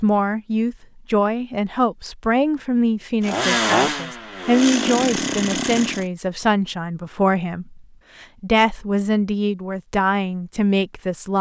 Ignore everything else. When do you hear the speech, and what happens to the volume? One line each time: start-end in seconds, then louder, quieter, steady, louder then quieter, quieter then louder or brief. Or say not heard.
0.0-11.3 steady.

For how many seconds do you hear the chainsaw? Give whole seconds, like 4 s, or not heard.
3 s.